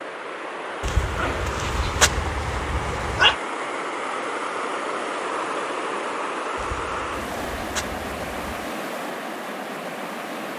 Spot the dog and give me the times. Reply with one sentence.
You can hear the dog from 0.8 to 3.4 s and from 6.5 to 8.7 s.